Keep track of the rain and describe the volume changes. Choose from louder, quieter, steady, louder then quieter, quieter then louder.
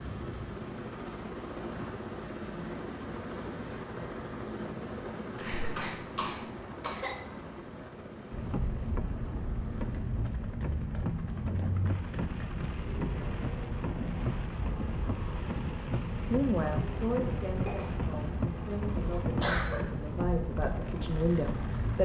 steady.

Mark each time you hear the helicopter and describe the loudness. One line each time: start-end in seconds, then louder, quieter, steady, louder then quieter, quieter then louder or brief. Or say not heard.
0.0-22.0 quieter.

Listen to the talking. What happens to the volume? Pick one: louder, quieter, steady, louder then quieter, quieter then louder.
quieter then louder.